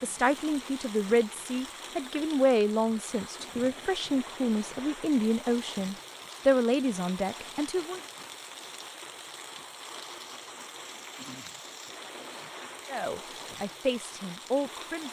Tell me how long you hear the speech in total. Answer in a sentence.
The speech can be heard for 10 seconds in total.